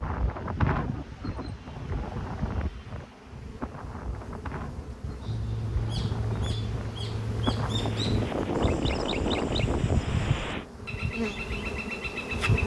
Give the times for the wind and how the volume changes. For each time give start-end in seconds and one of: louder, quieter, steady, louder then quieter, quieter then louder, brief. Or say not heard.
0.0-10.7 quieter then louder.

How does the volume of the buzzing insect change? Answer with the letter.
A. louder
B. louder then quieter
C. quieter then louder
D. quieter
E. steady
A.